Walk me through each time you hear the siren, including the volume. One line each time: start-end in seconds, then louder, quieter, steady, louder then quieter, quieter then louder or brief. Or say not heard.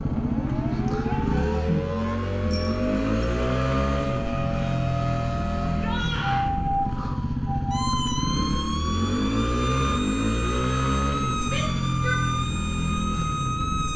0.0-13.9 steady.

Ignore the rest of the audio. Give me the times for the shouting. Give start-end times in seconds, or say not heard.
1.0-1.9, 5.7-6.5, 11.4-12.2.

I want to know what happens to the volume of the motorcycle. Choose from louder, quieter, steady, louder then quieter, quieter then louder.
steady.